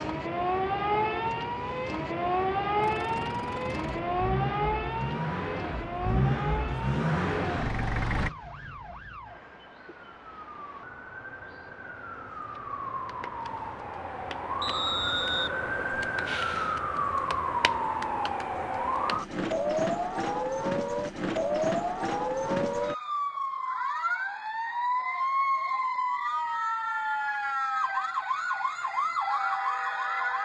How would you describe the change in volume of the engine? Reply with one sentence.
The volume of the engine goes up.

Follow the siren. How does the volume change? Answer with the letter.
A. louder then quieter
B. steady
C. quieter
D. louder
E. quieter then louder
E.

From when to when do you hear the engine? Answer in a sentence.
The engine can be heard from 2.8 to 8.3 s.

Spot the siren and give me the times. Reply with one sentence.
The siren can be heard from 0.0 to 30.4 s.